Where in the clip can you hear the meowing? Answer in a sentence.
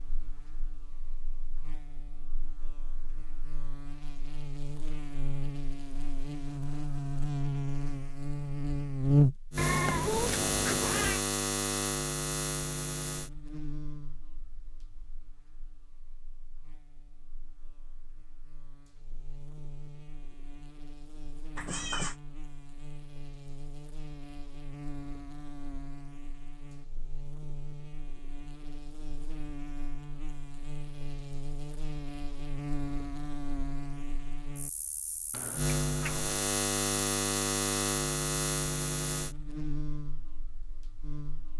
The meowing can be heard from 9.6 to 11.2 s, from 21.6 to 22.1 s and from 35.3 to 36.3 s.